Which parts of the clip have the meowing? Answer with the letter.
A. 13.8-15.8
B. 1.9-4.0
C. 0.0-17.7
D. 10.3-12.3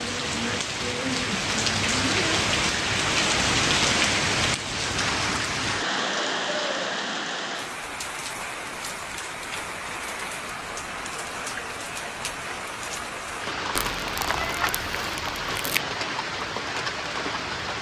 A.